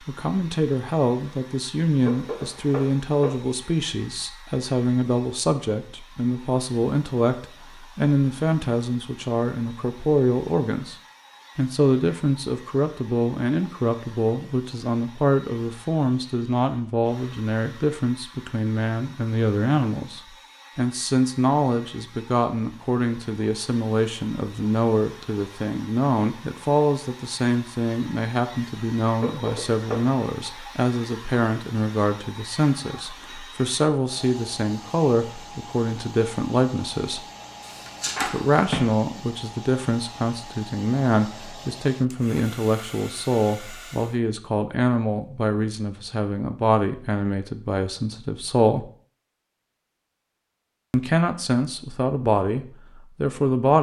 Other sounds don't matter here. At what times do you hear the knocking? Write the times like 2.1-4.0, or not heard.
2.0-3.4, 29.2-30.2, 37.6-38.9.